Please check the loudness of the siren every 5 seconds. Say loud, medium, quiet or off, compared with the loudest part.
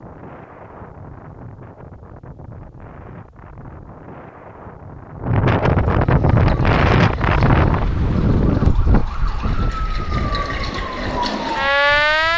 off, quiet, loud.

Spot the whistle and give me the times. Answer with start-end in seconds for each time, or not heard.
not heard.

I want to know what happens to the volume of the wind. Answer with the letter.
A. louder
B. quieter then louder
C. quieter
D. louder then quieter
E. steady
D.